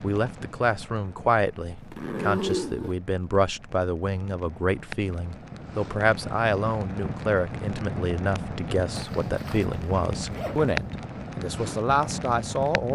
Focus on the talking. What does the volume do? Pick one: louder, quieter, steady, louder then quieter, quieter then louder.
steady.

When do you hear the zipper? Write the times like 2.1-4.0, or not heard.
1.8-3.0, 8.9-10.8.